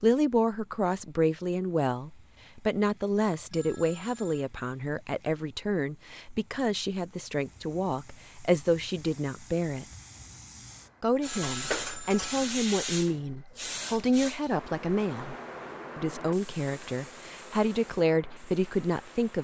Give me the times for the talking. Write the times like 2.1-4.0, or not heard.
0.0-9.8, 11.0-15.3, 15.9-19.4.